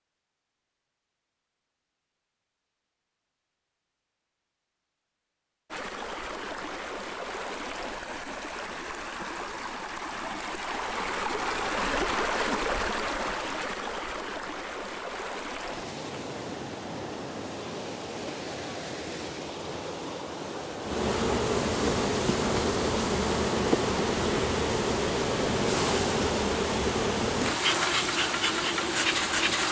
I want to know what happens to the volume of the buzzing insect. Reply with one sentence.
The loudness of the buzzing insect stays about the same.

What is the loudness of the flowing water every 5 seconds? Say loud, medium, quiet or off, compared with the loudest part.
off, medium, loud, medium, medium, medium.